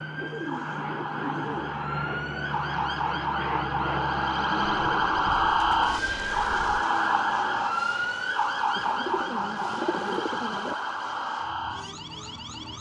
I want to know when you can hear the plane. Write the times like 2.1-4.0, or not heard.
0.0-12.7.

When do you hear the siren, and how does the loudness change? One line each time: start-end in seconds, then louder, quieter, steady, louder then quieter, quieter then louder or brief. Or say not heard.
0.0-12.7 louder then quieter.